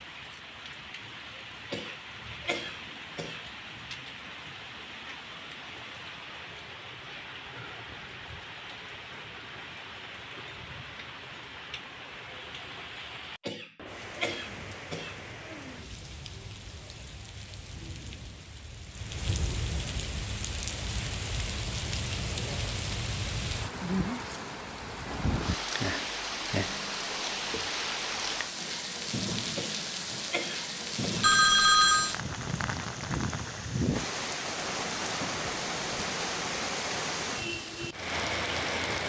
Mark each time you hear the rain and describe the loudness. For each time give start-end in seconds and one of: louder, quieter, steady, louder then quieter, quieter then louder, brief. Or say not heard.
0.0-39.0 louder.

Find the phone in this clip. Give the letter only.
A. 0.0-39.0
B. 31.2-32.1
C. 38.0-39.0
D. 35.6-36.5
B.